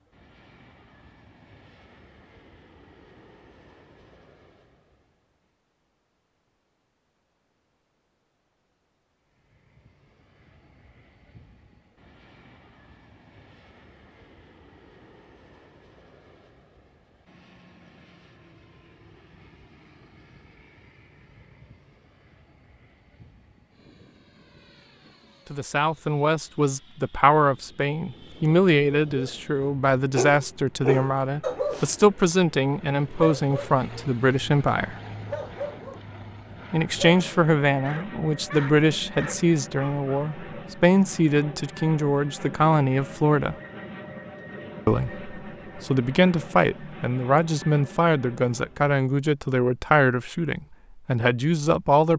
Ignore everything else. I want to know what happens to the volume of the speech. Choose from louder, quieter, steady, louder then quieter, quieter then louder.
steady.